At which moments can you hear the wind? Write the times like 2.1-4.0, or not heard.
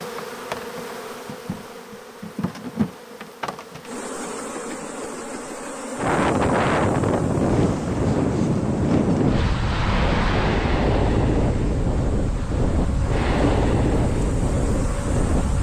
6.0-15.5.